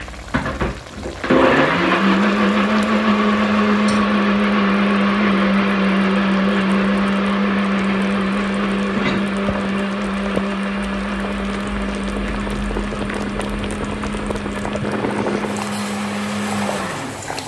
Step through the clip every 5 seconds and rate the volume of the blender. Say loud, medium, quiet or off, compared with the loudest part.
loud, loud, medium, medium.